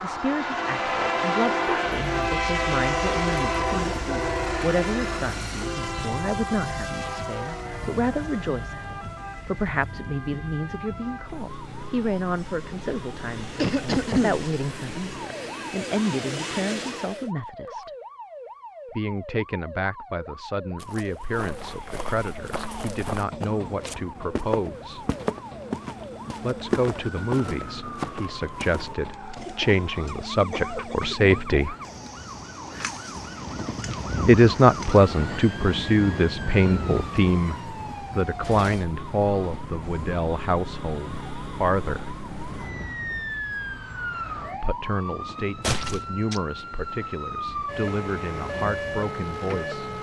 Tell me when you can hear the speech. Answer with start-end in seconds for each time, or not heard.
0.0-17.9, 18.9-25.1, 26.4-31.8, 34.2-42.1, 44.5-49.9.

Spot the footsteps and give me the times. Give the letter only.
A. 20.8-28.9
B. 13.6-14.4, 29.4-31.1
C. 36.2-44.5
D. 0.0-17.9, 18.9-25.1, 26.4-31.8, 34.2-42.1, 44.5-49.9
A.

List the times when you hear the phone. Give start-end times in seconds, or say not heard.
not heard.